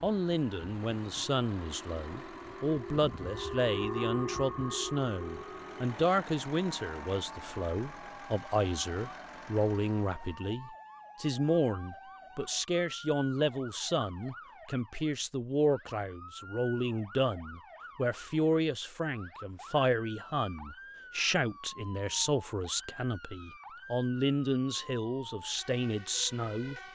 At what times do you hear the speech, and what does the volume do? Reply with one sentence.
The speech can be heard from 0.0 to 26.8 s, at a steady volume.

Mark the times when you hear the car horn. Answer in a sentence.
The car horn can't be heard in this clip.